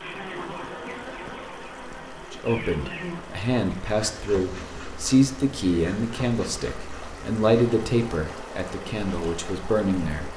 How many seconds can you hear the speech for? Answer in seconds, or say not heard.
8 s.